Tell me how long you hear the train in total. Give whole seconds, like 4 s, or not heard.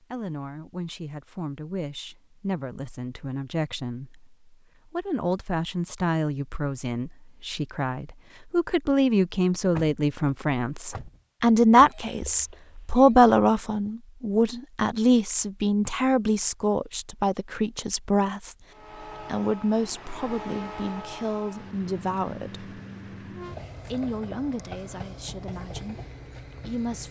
8 s.